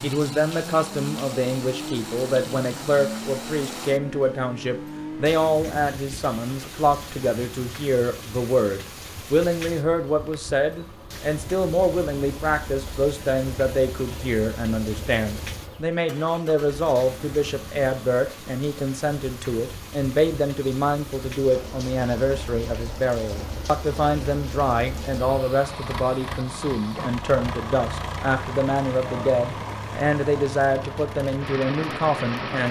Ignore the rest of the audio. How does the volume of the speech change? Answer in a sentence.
The loudness of the speech stays about the same.